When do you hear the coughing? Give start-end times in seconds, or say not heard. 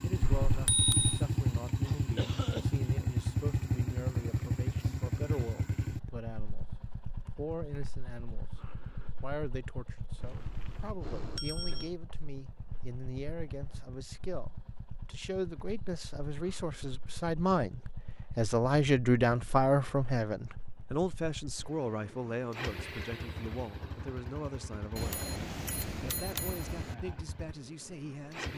1.8-2.8.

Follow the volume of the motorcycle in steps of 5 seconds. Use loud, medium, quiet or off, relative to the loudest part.
loud, medium, quiet, quiet, quiet, quiet.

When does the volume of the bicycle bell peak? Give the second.
1 s.